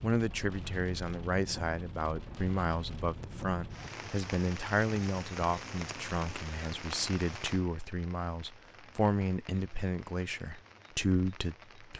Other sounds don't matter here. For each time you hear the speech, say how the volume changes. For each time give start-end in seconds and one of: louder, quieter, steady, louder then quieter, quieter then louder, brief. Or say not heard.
0.0-11.9 steady.